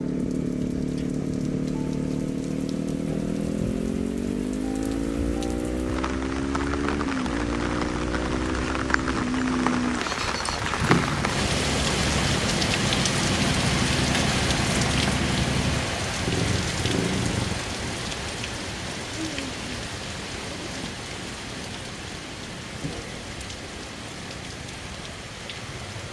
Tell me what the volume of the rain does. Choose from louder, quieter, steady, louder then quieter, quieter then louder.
louder then quieter.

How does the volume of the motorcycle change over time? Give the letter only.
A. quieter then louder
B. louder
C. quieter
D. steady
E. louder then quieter
C.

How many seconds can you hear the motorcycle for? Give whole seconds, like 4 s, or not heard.
26 s.